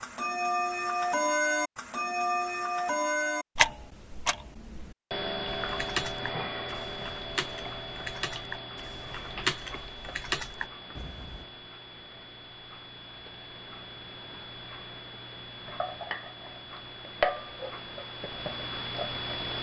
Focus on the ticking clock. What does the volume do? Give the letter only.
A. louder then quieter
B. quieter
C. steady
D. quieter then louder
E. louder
D.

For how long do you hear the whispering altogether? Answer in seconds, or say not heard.
not heard.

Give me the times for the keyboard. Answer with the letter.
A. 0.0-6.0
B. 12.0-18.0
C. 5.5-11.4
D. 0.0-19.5
C.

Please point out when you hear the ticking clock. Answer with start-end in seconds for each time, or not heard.
0.0-19.5.